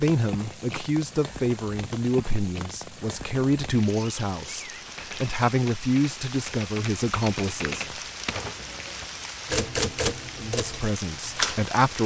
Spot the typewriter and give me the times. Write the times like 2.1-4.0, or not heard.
5.0-11.7.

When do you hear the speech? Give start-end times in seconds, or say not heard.
0.0-8.0, 10.3-12.0.